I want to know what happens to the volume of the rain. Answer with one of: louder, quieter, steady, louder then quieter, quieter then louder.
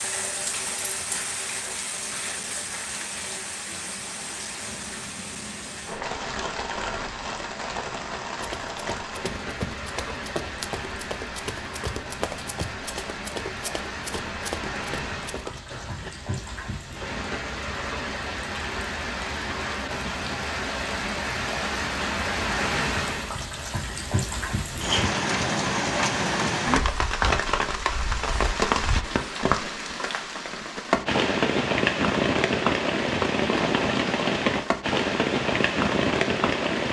louder.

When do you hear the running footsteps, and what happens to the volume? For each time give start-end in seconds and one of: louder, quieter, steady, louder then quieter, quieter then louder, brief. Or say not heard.
8.3-16.1 steady.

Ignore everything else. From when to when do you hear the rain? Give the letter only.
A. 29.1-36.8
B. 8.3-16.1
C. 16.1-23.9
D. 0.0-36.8
D.